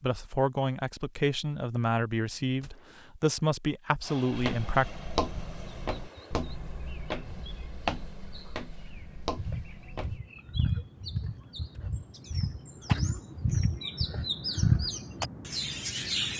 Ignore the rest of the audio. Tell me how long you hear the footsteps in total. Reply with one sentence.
You can hear the footsteps for 6 seconds altogether.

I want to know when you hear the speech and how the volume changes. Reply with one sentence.
The speech can be heard from 0.0 to 4.8 s, at a steady volume.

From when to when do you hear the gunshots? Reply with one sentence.
The gunshots can be heard from 2.6 to 3.0 s.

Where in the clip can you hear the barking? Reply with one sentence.
The barking can't be heard in this clip.